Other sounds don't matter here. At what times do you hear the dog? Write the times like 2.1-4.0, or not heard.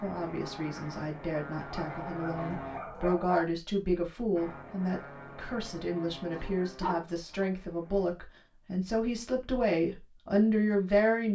1.7-3.5, 6.3-7.5.